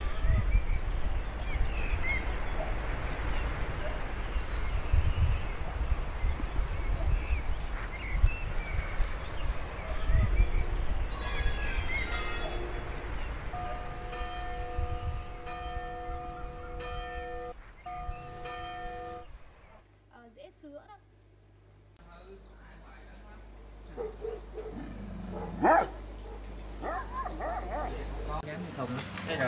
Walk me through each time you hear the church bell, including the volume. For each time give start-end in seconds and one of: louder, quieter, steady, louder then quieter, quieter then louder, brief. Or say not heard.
10.3-19.2 steady.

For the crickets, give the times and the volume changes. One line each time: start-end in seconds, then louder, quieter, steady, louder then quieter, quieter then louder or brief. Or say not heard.
0.0-29.4 quieter then louder.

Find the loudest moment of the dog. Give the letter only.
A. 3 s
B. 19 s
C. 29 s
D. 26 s
D.